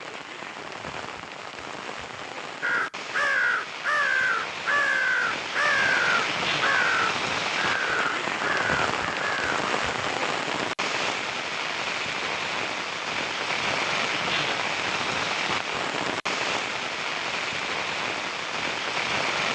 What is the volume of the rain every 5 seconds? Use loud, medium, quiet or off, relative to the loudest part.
medium, loud, loud, loud.